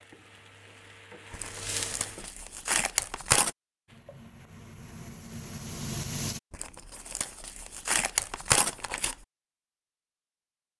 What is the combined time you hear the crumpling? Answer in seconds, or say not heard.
5 s.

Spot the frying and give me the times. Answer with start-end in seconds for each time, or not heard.
0.0-2.3, 3.9-6.4.